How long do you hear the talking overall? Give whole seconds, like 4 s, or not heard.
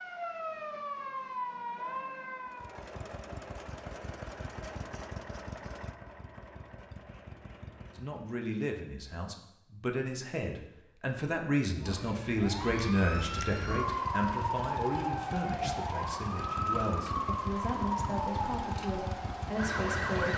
12 s.